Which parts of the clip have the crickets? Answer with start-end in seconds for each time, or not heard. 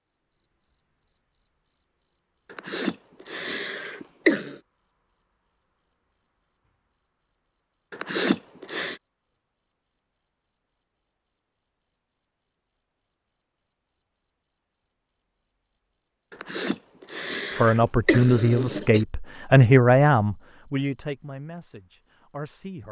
0.0-22.8.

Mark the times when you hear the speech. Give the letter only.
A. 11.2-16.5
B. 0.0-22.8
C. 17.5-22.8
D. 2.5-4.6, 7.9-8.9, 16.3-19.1
C.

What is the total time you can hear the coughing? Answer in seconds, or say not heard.
6 s.